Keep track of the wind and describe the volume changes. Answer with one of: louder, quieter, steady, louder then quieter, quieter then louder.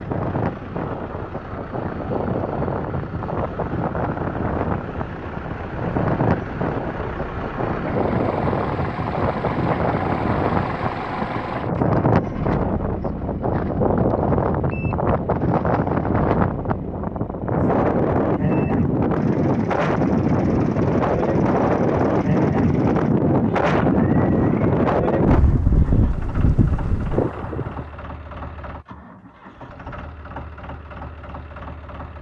louder.